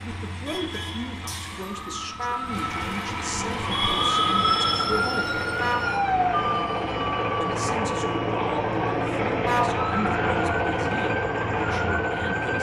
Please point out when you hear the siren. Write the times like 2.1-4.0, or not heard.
0.0-12.5.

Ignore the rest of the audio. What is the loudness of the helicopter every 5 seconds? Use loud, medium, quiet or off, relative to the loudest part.
medium, loud, loud.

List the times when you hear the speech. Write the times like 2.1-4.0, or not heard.
0.0-5.4, 7.4-12.5.